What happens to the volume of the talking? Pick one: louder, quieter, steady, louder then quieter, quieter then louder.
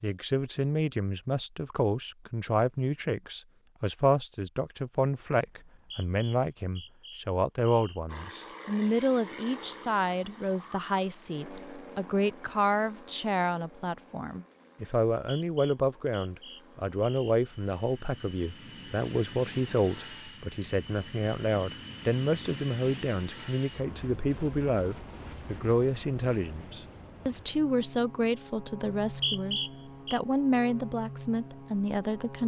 steady.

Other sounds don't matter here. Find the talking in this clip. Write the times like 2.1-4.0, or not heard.
0.0-32.4.